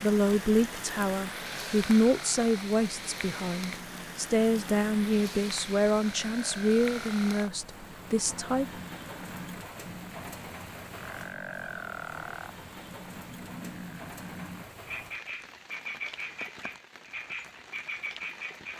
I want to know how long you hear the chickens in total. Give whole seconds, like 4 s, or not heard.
not heard.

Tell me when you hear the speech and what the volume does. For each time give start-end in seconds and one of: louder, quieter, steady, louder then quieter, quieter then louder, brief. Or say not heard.
0.0-8.7 steady.